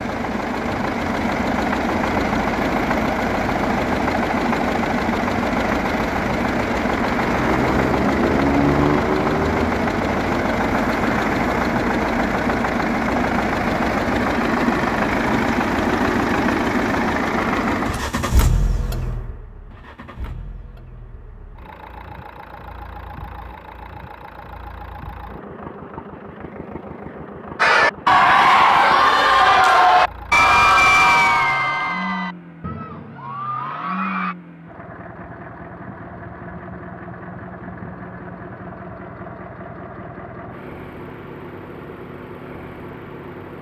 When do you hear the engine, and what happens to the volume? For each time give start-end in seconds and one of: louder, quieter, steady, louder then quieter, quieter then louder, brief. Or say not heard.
0.0-43.5 quieter.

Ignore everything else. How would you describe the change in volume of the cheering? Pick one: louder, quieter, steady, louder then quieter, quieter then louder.
quieter.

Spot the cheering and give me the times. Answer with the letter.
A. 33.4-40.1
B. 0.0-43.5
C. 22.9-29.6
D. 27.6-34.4
D.